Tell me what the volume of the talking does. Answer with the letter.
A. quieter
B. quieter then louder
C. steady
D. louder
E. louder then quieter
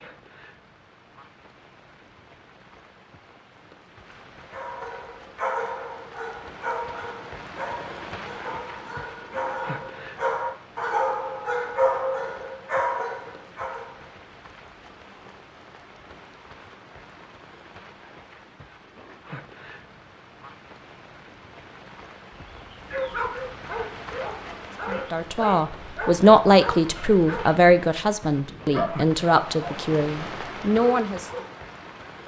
A.